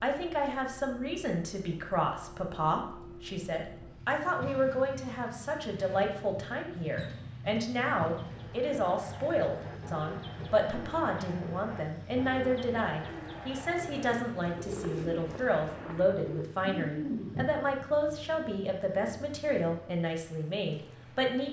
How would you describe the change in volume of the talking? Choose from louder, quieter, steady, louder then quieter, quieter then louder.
steady.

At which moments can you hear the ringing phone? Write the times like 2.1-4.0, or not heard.
not heard.